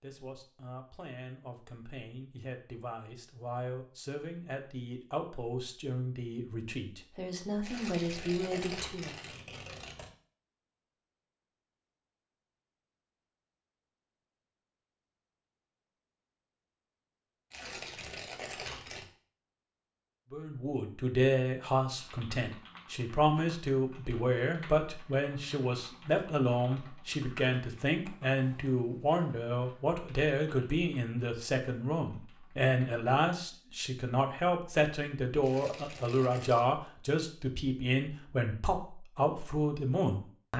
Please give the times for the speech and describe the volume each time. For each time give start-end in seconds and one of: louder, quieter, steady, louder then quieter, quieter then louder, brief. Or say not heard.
0.0-9.2 louder
20.3-40.5 steady.